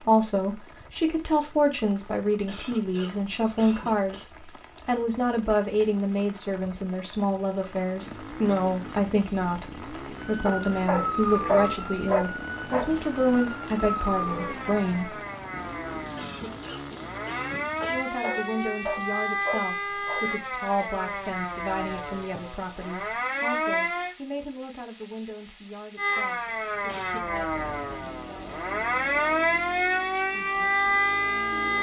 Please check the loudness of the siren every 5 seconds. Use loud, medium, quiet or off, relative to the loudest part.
off, off, medium, medium, medium, loud, loud.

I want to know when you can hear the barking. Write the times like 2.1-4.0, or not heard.
10.4-12.9, 17.8-20.3.